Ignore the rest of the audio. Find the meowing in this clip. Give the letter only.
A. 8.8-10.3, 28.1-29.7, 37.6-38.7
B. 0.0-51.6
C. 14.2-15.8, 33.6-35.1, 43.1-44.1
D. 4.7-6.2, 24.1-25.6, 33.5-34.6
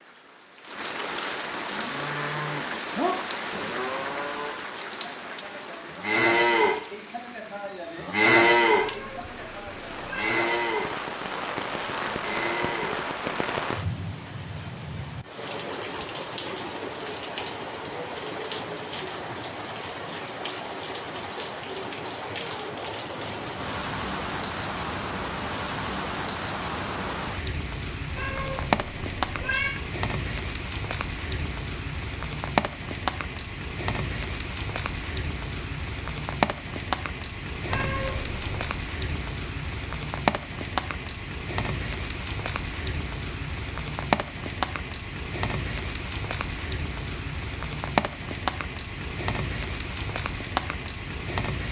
A.